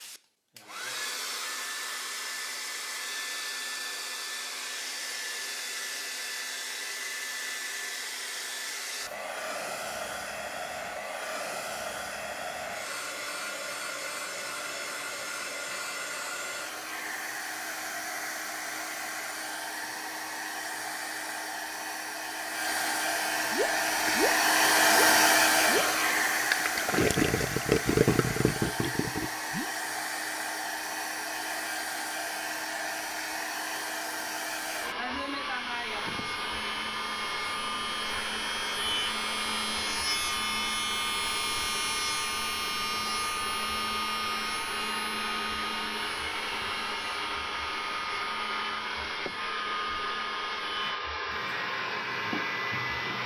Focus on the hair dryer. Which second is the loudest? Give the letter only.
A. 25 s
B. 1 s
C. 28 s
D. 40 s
A.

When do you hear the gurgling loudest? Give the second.
28 s.